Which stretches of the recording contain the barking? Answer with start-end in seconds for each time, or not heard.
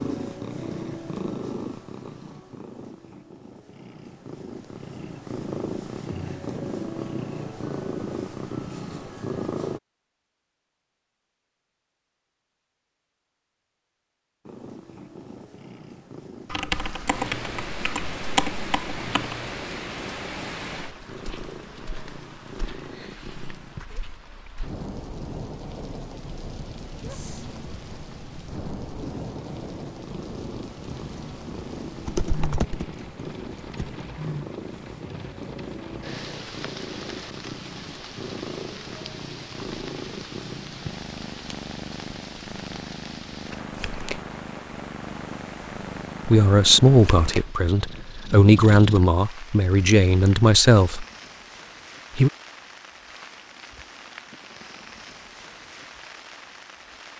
not heard.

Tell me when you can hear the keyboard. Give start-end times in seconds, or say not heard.
16.5-19.4, 32.0-34.0.